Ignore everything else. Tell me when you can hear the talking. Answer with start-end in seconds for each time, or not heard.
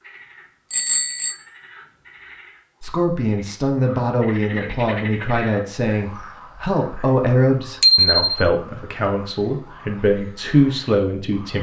2.8-11.5.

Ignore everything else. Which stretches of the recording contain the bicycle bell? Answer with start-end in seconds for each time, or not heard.
0.7-1.4, 7.8-8.3.